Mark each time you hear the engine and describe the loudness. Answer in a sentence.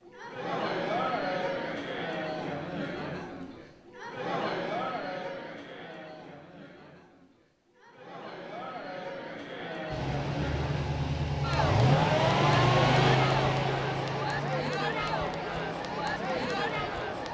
The engine can be heard from 9.9 to 17.3 s, getting louder then quieter.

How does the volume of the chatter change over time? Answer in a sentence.
The volume of the chatter goes down, then up.